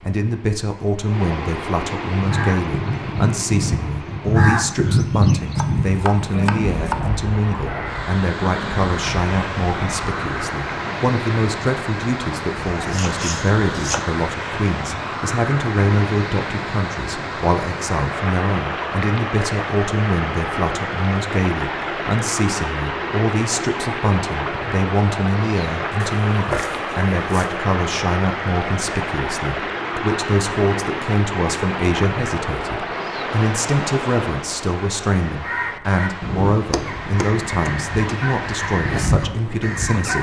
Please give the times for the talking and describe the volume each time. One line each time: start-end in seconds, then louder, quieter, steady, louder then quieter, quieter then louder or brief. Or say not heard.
0.0-40.1 steady.